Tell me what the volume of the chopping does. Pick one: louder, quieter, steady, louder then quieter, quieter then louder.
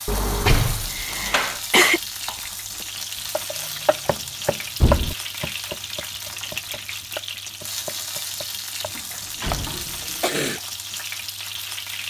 louder then quieter.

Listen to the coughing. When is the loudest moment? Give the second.
2 s.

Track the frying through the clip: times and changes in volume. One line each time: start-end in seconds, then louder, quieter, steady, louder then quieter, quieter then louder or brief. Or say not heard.
0.0-12.0 steady.